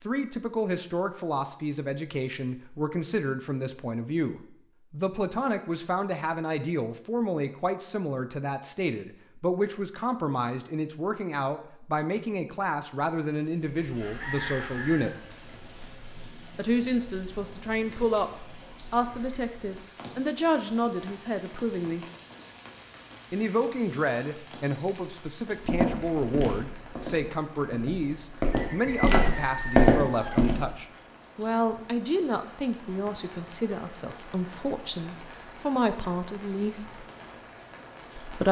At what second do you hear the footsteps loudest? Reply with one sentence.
The loudest moment of the footsteps is at 30 seconds.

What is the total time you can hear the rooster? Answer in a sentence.
You can hear the rooster for 3 seconds altogether.